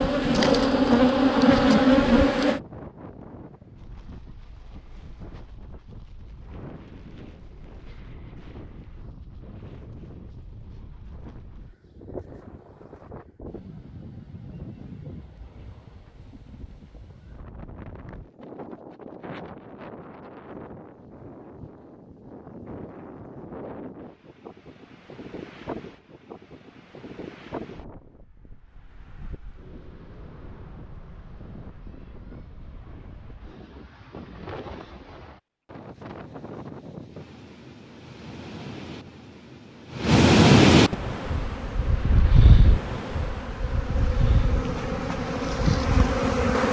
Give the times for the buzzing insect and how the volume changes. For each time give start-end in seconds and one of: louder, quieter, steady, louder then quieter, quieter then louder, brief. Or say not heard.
0.0-2.6 brief
41.0-46.6 louder.